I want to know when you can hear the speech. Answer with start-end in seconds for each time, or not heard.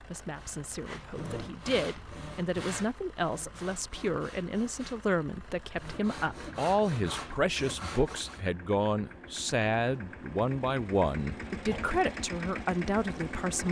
0.0-13.6.